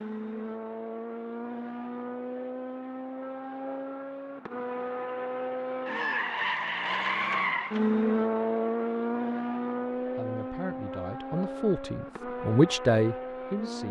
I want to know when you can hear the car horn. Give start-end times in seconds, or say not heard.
not heard.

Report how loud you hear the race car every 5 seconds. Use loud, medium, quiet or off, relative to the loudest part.
medium, loud, medium.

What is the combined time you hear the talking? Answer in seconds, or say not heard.
4 s.